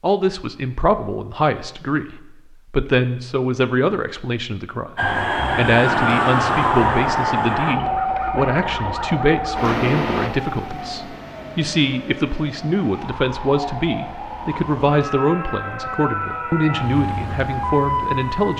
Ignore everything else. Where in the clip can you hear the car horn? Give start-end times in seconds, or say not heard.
not heard.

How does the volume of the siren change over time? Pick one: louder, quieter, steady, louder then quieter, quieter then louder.
quieter then louder.